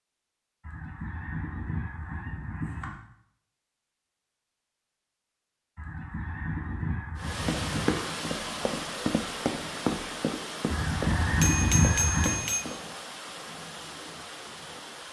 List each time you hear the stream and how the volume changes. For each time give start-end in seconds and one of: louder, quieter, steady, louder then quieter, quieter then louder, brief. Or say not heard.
7.2-15.0 quieter.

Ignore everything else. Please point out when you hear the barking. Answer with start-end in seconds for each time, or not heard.
not heard.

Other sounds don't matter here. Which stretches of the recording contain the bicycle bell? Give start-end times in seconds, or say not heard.
11.2-12.7.